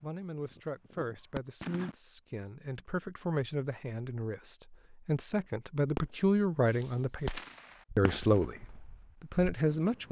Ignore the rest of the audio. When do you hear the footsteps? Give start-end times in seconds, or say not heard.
not heard.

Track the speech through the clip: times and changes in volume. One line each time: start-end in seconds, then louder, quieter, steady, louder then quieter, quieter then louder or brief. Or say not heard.
0.0-7.3 louder
8.0-10.0 brief.